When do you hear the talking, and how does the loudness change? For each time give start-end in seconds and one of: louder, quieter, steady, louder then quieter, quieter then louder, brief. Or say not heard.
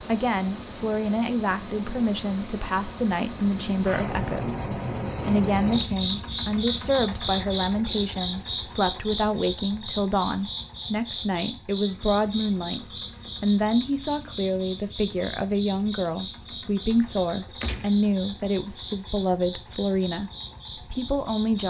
0.1-21.6 steady.